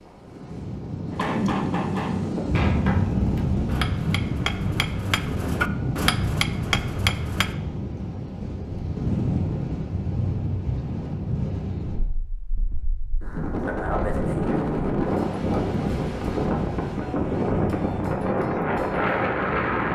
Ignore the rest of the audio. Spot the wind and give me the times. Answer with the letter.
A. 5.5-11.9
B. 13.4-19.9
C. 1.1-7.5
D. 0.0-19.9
D.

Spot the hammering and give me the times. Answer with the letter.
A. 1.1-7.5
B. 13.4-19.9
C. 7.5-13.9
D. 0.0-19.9
A.